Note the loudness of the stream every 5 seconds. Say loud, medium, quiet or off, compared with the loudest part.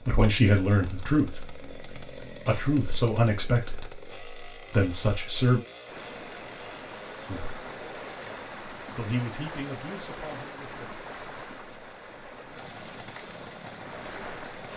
off, loud, loud.